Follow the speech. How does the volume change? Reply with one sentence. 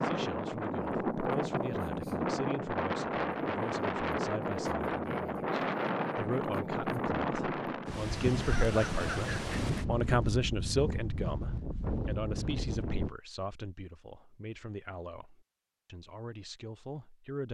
The loudness of the speech goes up, then down.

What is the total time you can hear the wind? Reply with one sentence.
You can hear the wind for 13 seconds altogether.